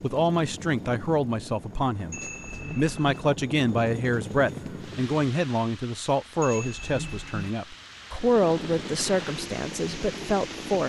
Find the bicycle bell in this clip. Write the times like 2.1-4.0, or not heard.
2.1-3.2, 6.4-7.5.